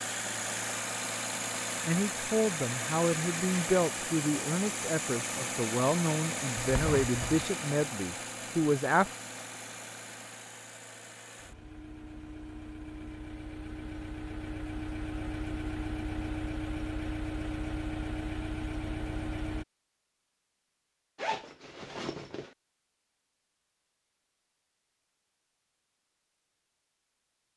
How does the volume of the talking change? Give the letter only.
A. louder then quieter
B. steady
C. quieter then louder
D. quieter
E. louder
B.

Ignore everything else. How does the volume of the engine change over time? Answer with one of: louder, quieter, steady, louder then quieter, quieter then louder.
quieter then louder.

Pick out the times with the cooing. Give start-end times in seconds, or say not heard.
not heard.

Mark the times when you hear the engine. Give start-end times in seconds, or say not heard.
0.0-19.6.